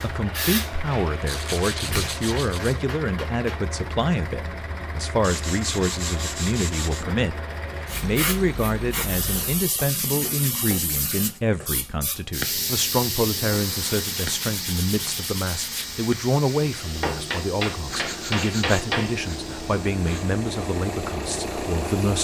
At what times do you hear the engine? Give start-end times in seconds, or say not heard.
0.0-9.7, 12.3-22.1.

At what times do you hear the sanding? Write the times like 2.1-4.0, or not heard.
1.2-2.8, 5.2-7.0, 9.8-11.4, 13.9-16.1, 17.9-20.3.